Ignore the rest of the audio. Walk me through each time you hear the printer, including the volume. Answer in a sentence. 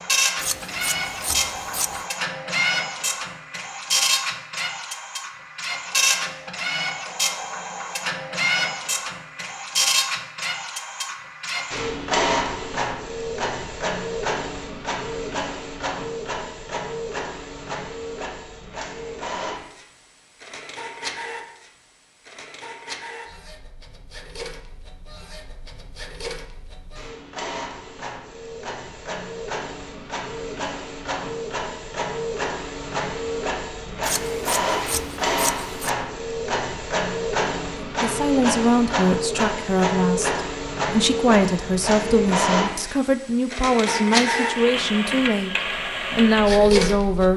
You can hear the printer from 0.0 to 47.3 s, getting quieter then louder.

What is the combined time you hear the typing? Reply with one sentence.
You can't hear the typing here.